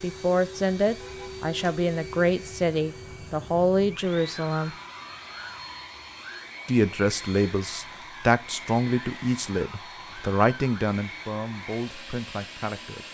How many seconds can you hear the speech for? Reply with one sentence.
You can hear the speech for 11 seconds altogether.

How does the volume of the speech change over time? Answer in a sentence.
The volume of the speech goes down.